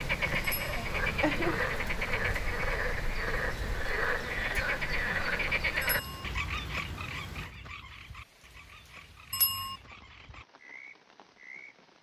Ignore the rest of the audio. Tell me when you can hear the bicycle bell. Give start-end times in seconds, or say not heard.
0.4-0.9, 5.8-6.2, 9.3-9.8.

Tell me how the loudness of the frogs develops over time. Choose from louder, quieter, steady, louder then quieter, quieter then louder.
quieter.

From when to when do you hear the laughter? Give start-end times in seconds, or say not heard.
0.8-1.6.